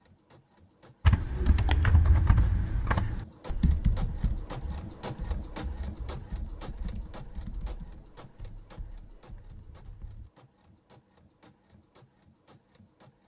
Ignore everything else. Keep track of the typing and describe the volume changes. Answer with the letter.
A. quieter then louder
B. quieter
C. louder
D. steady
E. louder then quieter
B.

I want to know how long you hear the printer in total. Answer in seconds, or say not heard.
13 s.